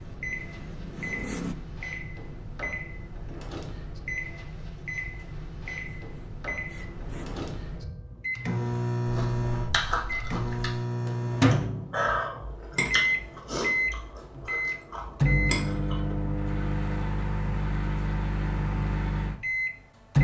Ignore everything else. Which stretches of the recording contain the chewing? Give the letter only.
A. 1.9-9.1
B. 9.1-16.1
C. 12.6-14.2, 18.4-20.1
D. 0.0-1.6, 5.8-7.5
B.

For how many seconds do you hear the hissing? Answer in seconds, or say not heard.
3 s.